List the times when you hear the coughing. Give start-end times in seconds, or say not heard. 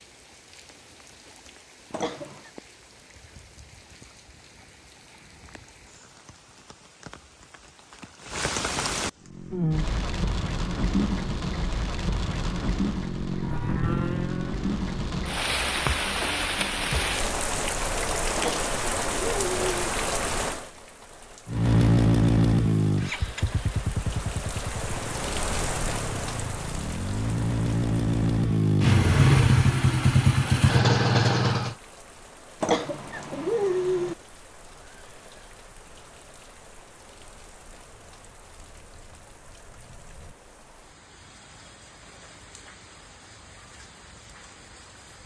1.9-2.5, 18.4-19.8, 32.6-34.1.